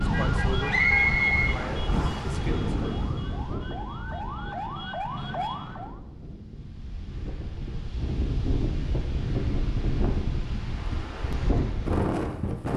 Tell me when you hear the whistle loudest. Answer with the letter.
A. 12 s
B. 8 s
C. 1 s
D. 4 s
C.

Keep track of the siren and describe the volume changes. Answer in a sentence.
The volume of the siren goes down, then up.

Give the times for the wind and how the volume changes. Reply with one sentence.
You can hear the wind from 0.0 to 12.7 s, getting quieter then louder.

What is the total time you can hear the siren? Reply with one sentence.
The siren can be heard for 6 seconds in total.